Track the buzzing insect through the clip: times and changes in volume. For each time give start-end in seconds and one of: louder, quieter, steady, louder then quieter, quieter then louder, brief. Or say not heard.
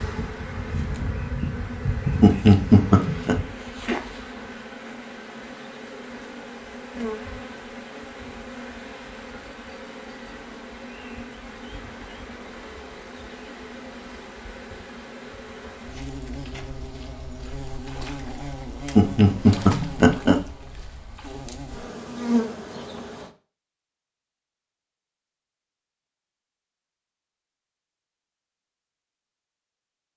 0.0-23.3 quieter then louder.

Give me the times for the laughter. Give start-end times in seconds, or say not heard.
2.2-3.4, 18.9-20.4.